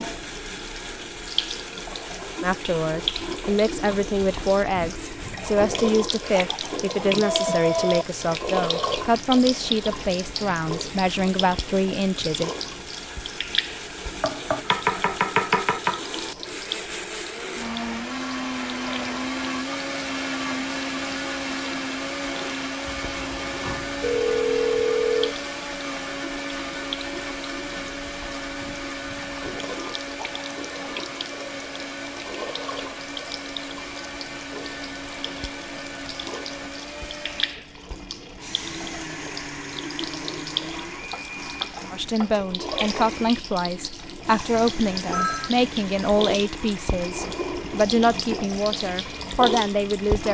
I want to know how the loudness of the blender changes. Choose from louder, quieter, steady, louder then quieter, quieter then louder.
louder then quieter.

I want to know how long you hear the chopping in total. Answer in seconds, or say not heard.
3 s.